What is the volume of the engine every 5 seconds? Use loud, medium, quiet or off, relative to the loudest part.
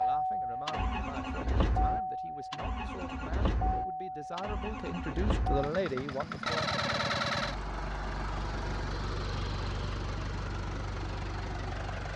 loud, loud, medium.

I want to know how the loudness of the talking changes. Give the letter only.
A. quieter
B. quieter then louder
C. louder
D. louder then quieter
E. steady
C.